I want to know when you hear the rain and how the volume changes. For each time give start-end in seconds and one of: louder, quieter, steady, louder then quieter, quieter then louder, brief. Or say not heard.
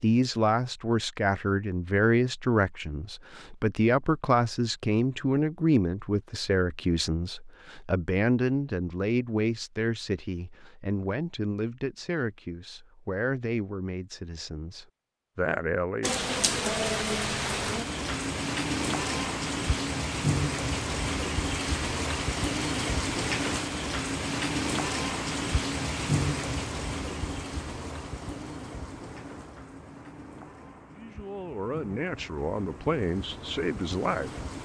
16.0-34.6 quieter.